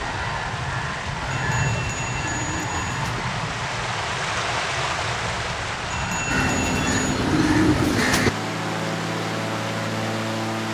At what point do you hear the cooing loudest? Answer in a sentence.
The loudest moment of the cooing is at 8 seconds.